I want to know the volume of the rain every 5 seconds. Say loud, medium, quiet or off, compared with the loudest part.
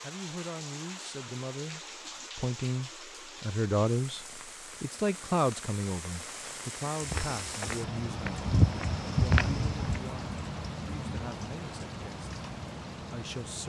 medium, loud, loud.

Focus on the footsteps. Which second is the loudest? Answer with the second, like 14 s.
9 s.